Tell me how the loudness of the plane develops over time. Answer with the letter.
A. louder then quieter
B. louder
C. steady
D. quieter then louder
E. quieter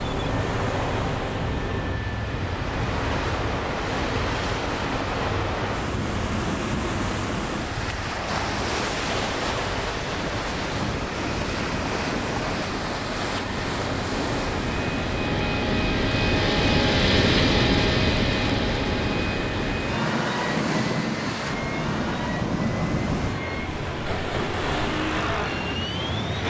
A.